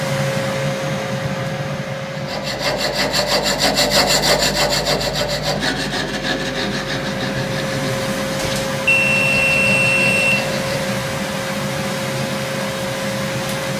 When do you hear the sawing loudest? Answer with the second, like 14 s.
4 s.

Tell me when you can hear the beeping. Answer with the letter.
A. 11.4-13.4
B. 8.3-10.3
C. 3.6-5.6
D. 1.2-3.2
B.